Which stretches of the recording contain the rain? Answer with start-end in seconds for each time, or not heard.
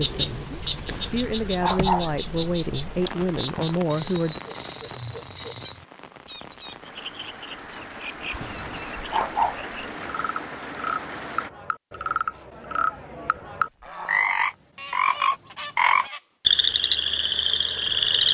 0.0-11.5.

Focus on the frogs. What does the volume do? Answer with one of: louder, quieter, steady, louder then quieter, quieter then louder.
quieter then louder.